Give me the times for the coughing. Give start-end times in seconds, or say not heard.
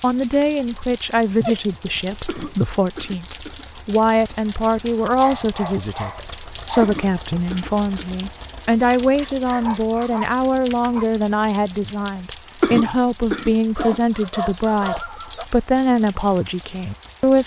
2.2-3.6, 6.8-8.2, 12.6-14.0.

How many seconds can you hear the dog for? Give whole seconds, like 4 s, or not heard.
7 s.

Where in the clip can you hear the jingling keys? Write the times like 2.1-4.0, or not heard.
not heard.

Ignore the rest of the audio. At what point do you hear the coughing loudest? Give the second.
13 s.